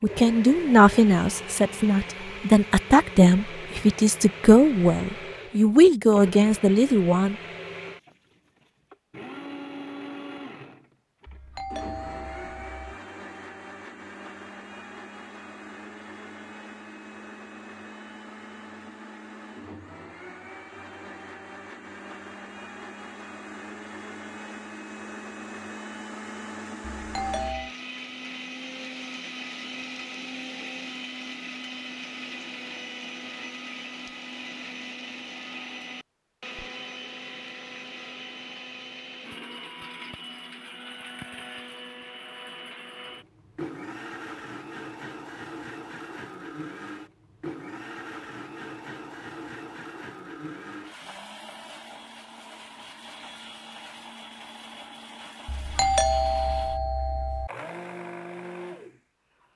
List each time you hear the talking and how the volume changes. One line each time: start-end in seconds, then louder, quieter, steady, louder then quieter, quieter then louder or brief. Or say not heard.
0.0-7.3 steady.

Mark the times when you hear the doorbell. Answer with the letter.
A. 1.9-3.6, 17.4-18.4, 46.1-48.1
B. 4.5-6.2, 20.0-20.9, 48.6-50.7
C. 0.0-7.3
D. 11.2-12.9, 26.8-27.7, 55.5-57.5
D.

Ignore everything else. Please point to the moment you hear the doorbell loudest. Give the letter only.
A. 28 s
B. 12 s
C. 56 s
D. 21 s
C.